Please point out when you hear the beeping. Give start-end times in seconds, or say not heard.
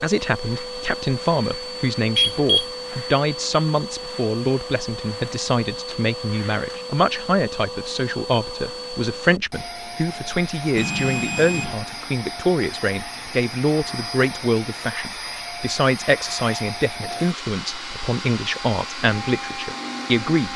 2.1-2.6, 10.8-11.8.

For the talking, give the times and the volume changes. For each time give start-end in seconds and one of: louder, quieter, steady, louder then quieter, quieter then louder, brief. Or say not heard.
0.0-20.5 steady.